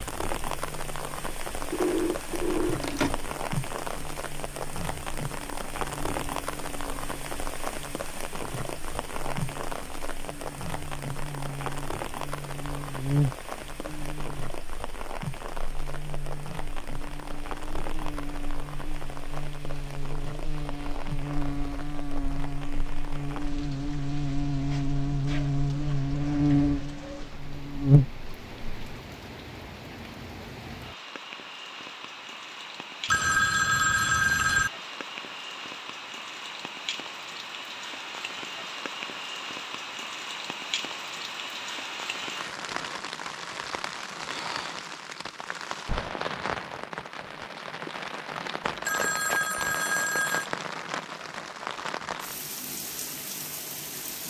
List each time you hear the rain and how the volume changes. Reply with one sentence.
You can hear the rain from 0.0 to 54.2 s, getting quieter then louder.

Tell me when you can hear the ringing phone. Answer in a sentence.
You can hear the ringing phone from 1.7 to 3.2 s, from 33.0 to 34.7 s and from 48.6 to 50.5 s.